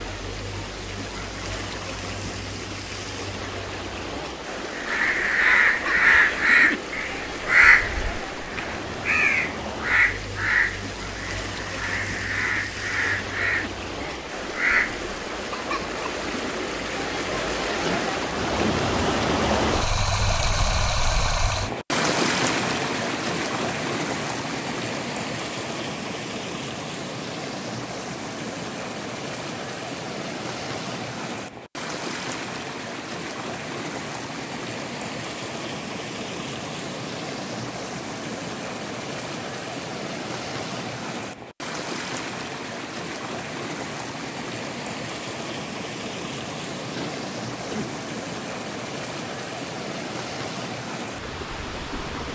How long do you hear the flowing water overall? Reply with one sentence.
You can hear the flowing water for 52 seconds altogether.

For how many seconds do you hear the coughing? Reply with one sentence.
You can hear the coughing for 2 seconds altogether.